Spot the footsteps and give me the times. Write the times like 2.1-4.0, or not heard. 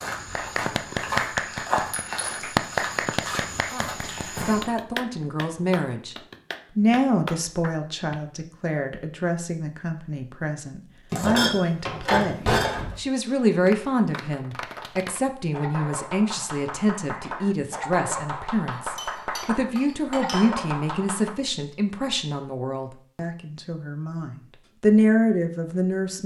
0.0-4.7.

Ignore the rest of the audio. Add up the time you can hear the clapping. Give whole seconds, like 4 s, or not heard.
16 s.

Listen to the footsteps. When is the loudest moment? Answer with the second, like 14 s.
2 s.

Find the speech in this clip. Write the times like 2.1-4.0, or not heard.
3.7-6.2, 6.8-26.2.